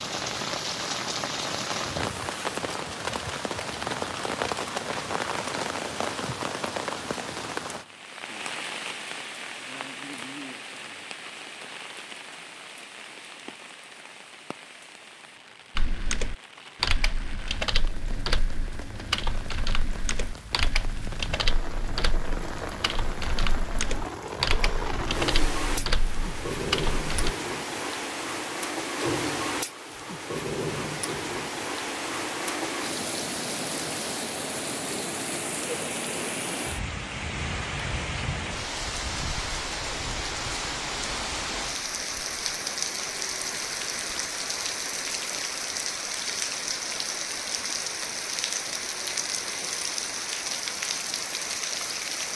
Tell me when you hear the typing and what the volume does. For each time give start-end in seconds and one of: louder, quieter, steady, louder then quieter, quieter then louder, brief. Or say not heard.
15.8-27.4 steady.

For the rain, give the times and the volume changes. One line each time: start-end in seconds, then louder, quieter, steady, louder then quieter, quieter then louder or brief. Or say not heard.
0.0-52.3 quieter then louder.